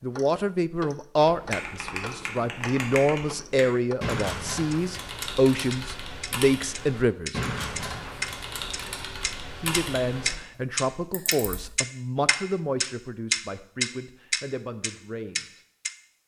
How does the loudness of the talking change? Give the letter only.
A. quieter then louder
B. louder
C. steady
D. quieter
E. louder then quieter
D.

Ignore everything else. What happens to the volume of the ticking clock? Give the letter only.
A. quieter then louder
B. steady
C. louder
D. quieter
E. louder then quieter
C.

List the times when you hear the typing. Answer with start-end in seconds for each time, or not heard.
1.2-11.7.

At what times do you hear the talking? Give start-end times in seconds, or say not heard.
0.0-7.4, 9.6-15.6.